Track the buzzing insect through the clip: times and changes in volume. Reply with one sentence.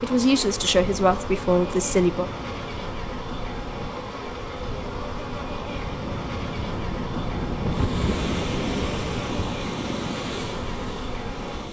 You can hear the buzzing insect from 0.0 to 11.6 s, at a steady volume.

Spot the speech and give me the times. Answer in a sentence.
The speech can be heard from 0.0 to 2.2 s.